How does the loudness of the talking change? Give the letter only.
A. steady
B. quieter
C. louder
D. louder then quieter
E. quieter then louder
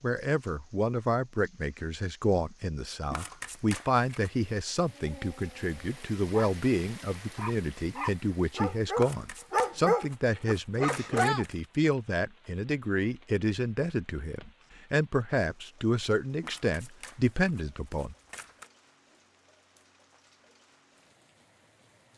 A.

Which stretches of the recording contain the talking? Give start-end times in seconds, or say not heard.
0.0-18.1.